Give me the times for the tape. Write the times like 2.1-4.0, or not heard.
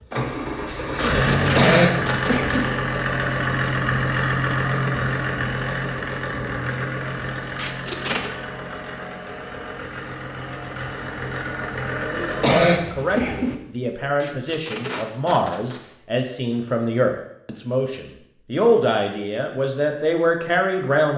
0.9-2.6, 7.5-8.3, 14.2-15.8.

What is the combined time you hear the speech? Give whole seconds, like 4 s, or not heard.
9 s.